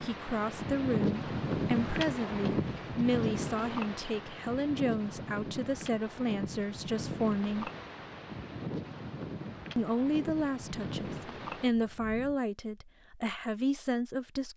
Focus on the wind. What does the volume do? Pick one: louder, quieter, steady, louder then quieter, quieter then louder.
quieter.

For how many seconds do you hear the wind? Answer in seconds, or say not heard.
12 s.